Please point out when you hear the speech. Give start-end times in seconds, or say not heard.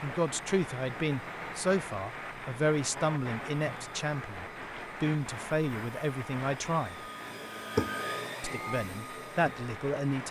0.0-7.0, 8.4-10.2.